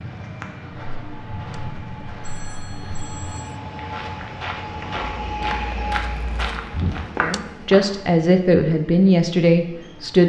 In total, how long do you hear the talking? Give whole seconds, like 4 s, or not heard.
3 s.